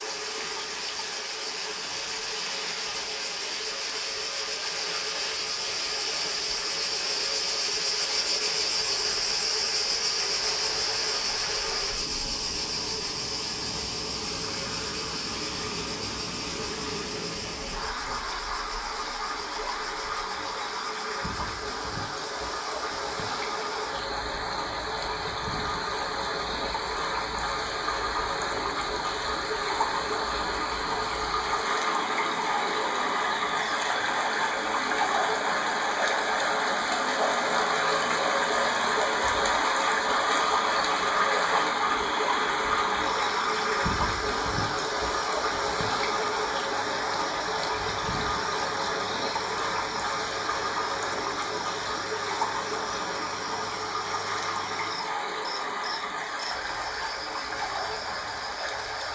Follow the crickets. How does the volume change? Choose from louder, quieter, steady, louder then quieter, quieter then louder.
quieter.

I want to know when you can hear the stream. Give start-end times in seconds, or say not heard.
0.0-59.0.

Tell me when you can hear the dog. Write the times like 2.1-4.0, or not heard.
not heard.